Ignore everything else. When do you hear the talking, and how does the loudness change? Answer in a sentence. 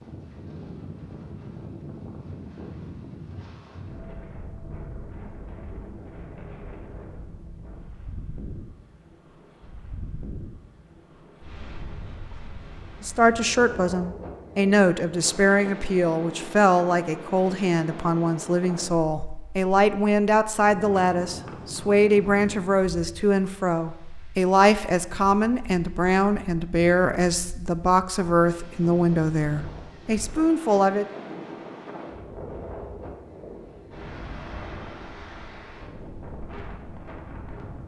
You can hear the talking from 13.0 to 31.1 s, at a steady volume.